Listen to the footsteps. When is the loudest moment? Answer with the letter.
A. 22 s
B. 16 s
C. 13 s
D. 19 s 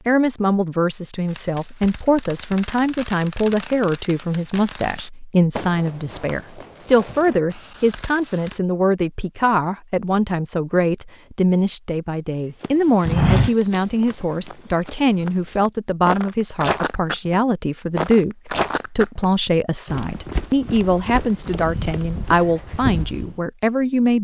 C.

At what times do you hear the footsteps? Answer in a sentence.
The footsteps can be heard from 12.6 to 17.4 s, from 17.9 to 19.2 s and from 19.9 to 23.4 s.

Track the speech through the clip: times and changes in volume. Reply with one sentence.
You can hear the speech from 0.1 to 24.1 s, at a steady volume.